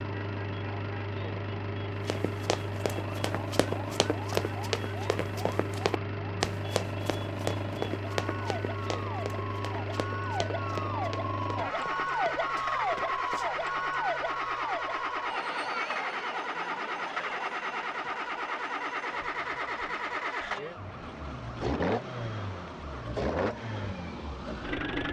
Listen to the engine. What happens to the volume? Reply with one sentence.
The loudness of the engine stays about the same.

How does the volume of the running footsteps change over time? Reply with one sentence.
The volume of the running footsteps goes down.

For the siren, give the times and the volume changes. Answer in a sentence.
The siren can be heard from 0.0 to 25.0 s, getting louder then quieter.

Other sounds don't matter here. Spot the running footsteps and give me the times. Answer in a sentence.
You can hear the running footsteps from 2.0 to 13.6 s.